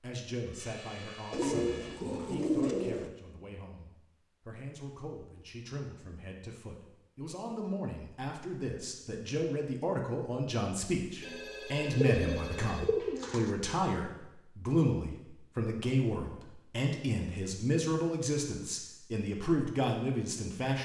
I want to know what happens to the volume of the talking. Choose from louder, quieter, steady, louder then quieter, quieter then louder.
louder.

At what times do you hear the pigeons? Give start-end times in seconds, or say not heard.
1.3-3.1, 12.1-13.5.